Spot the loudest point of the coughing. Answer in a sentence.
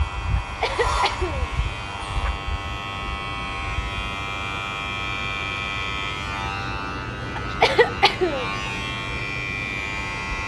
The loudest moment of the coughing is at 8 seconds.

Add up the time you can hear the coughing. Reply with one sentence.
The coughing can be heard for 3 seconds in total.